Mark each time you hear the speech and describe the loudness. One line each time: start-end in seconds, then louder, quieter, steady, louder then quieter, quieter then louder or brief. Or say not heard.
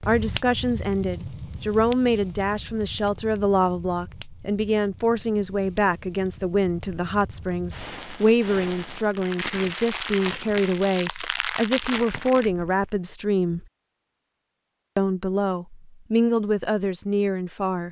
0.1-13.7 steady
14.9-17.8 brief.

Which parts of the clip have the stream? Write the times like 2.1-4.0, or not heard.
not heard.